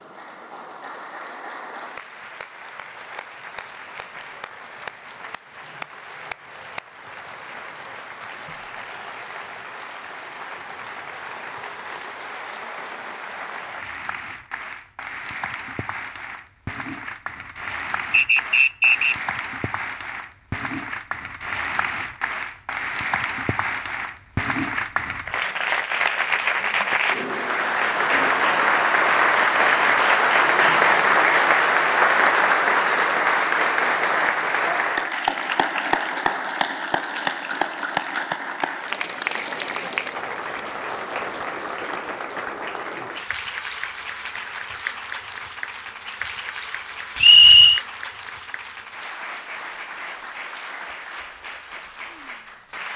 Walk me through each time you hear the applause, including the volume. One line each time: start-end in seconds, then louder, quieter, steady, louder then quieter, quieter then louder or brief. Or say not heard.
0.0-52.9 louder then quieter.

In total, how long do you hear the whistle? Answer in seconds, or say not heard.
2 s.